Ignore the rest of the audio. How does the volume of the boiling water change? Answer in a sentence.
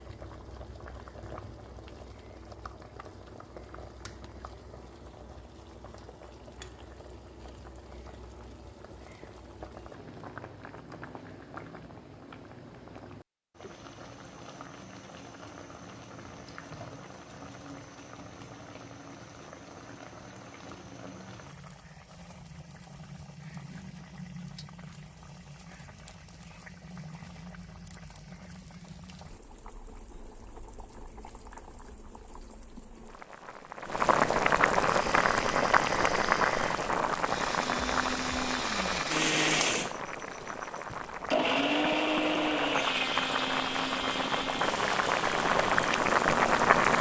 The loudness of the boiling water goes up.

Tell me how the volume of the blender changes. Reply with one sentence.
The volume of the blender goes up, then down.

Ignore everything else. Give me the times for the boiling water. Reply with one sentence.
You can hear the boiling water from 0.0 to 46.9 s.